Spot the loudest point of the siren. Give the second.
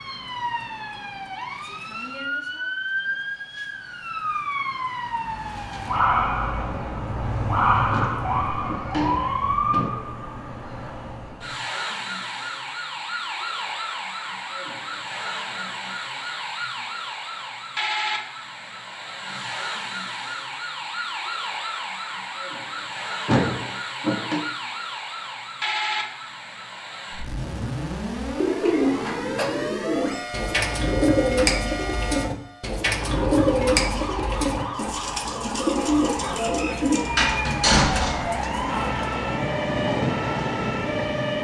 8 s.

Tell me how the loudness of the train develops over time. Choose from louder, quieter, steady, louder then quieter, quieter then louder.
louder.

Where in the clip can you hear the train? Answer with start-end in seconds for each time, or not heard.
36.0-41.3.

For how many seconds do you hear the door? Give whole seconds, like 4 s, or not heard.
4 s.